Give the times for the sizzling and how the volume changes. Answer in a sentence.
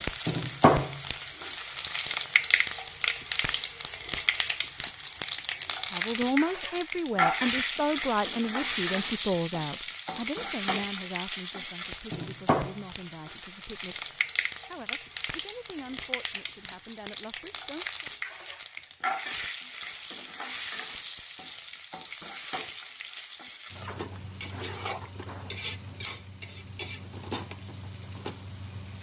You can hear the sizzling from 0.0 to 28.9 s, getting quieter.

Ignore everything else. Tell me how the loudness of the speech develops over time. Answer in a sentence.
The volume of the speech goes down.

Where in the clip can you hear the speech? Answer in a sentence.
The speech can be heard from 5.9 to 18.1 s.